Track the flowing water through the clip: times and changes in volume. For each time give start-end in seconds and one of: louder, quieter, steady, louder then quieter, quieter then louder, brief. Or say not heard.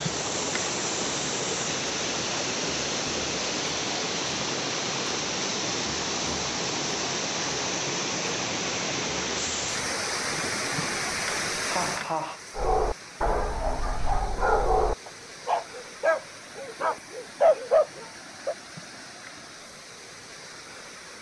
0.0-21.1 quieter.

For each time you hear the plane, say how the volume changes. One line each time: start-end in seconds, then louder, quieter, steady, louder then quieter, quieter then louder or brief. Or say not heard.
not heard.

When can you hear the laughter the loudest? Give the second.
12 s.